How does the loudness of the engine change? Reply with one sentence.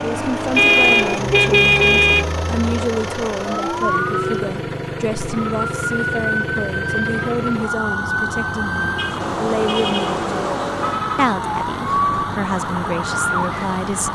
The loudness of the engine stays about the same.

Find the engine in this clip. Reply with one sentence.
You can hear the engine from 0.0 to 14.1 s.